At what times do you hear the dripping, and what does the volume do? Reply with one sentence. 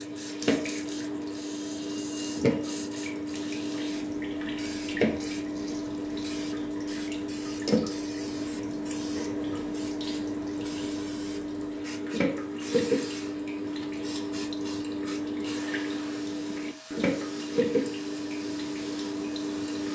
You can hear the dripping from 0.0 to 19.8 s, at a steady volume.